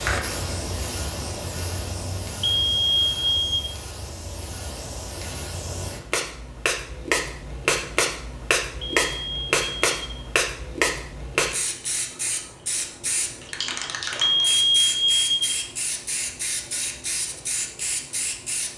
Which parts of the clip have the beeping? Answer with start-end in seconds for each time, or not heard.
2.4-3.7, 8.8-10.3, 14.2-15.7.